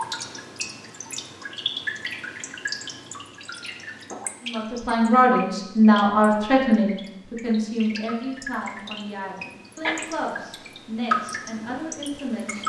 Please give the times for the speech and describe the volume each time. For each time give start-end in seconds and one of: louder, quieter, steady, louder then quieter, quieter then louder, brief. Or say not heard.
4.5-12.6 quieter.